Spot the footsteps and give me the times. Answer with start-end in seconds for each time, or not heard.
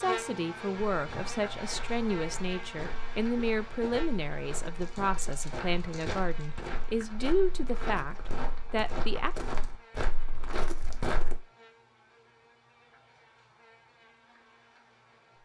0.9-11.4.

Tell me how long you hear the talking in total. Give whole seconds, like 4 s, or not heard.
9 s.